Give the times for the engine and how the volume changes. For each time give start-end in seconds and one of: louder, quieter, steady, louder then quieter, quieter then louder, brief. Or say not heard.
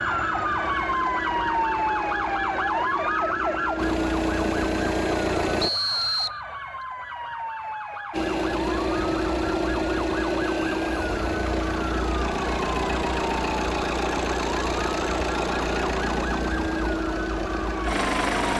0.0-5.7 louder
8.1-18.5 steady.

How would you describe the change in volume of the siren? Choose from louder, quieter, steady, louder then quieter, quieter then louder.
quieter.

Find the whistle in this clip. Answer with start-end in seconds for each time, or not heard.
5.6-6.4.